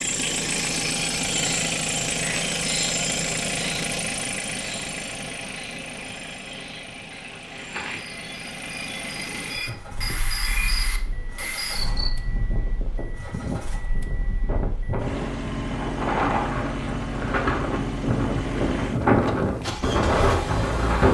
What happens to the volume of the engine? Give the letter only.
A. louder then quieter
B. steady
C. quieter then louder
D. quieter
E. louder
C.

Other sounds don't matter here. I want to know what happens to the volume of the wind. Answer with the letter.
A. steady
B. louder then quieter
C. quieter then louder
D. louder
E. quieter
D.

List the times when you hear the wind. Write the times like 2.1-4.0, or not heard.
9.4-21.0.